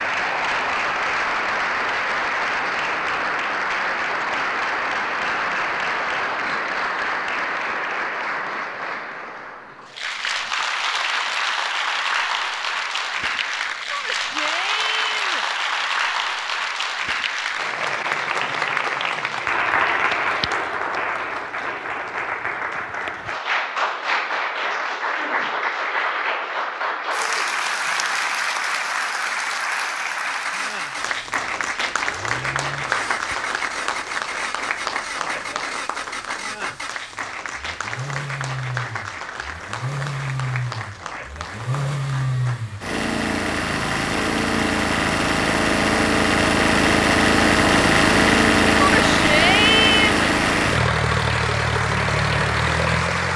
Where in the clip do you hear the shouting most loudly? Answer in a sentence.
The loudest moment of the shouting is at 50 seconds.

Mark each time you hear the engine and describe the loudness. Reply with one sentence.
The engine can be heard from 30.2 to 53.3 s, getting louder.